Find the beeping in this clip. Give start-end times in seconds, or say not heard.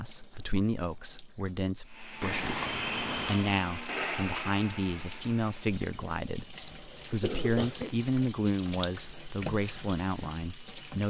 2.2-3.5.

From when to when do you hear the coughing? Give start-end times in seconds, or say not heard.
6.6-8.1.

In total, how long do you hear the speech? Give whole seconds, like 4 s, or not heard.
11 s.